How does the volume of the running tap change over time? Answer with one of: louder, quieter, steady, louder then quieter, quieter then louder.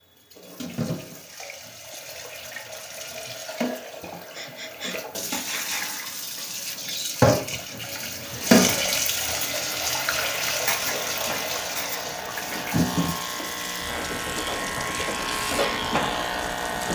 louder then quieter.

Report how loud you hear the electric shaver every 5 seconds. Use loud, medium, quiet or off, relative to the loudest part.
off, quiet, medium, loud.